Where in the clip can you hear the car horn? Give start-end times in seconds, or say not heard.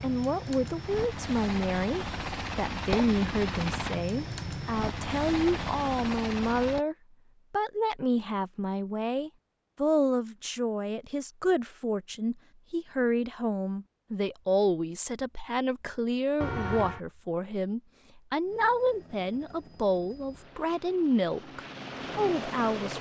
16.4-17.0.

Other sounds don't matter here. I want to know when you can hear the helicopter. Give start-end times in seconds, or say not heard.
0.0-6.8, 18.4-22.9.